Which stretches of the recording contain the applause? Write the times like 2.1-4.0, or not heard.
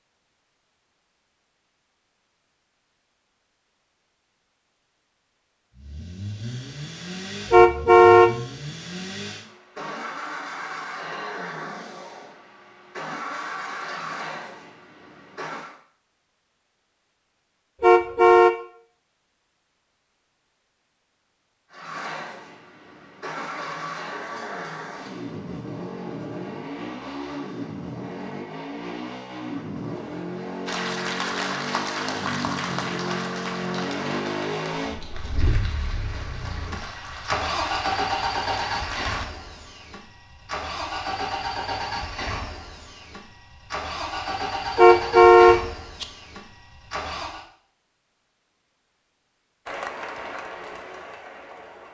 30.6-39.2, 49.6-51.8.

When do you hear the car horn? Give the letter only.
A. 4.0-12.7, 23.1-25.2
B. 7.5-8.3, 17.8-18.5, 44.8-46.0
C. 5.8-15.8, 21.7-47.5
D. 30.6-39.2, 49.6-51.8
B.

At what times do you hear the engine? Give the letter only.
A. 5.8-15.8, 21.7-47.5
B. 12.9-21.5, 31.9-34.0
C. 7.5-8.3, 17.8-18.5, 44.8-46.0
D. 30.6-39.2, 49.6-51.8
A.